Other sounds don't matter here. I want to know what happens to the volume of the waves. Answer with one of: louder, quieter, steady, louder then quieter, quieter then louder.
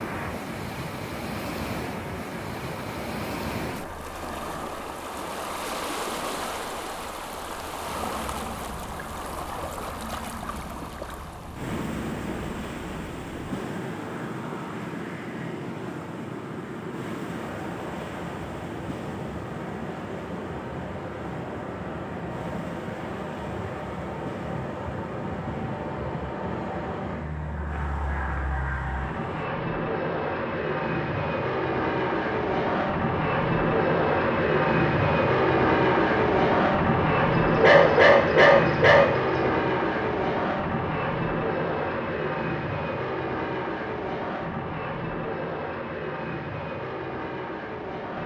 quieter.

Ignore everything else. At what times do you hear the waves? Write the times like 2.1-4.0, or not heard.
0.0-29.5.